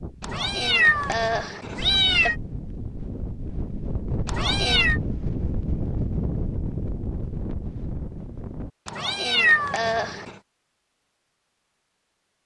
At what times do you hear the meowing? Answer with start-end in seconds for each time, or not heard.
0.2-2.4, 4.2-5.0, 8.8-10.3.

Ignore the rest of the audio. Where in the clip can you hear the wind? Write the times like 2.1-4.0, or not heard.
0.0-8.7.